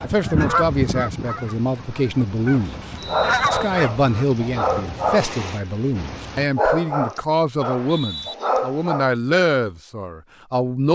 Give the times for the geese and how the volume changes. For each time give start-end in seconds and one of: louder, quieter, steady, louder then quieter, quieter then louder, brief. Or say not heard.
0.0-4.2 quieter then louder.